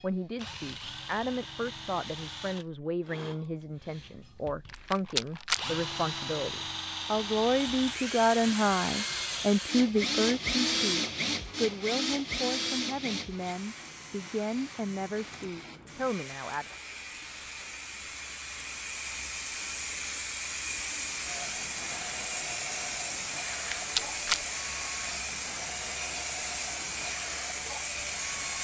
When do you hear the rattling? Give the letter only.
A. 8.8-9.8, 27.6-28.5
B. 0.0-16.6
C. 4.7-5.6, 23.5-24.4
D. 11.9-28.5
C.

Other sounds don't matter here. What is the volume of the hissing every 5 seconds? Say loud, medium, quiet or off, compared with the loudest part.
off, quiet, quiet, medium, loud, loud.